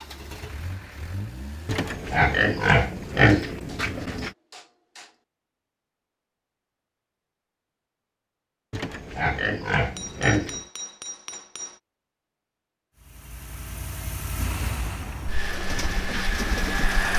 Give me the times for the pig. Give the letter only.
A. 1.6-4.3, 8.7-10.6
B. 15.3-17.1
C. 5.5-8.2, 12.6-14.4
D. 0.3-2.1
A.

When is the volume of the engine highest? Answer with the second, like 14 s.
17 s.